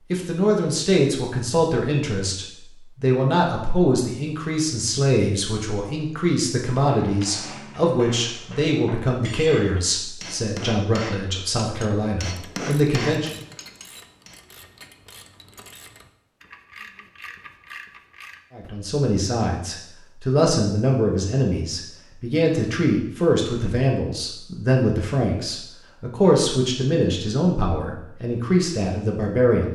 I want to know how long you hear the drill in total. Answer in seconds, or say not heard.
not heard.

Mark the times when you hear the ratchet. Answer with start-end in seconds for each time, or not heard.
12.3-18.8.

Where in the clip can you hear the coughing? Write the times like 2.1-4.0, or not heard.
not heard.